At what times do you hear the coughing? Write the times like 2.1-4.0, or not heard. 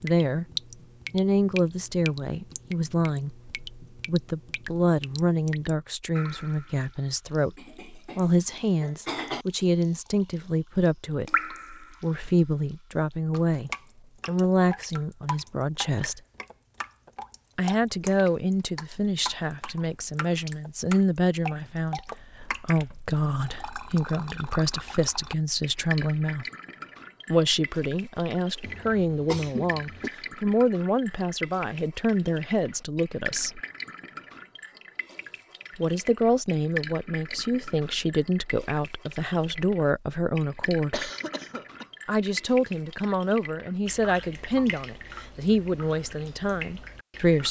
7.5-9.4, 28.6-30.1, 40.9-41.9.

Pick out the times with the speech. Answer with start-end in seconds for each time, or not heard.
0.0-0.5, 1.1-16.2, 17.6-26.4, 27.2-33.6, 35.8-41.1, 42.0-47.4.